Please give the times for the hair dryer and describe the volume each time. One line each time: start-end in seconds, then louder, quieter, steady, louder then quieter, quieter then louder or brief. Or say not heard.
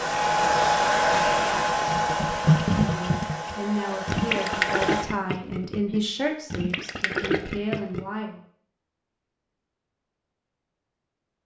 0.0-5.0 quieter.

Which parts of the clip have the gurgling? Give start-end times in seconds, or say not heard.
1.1-8.1.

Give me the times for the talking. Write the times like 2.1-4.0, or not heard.
2.8-8.4.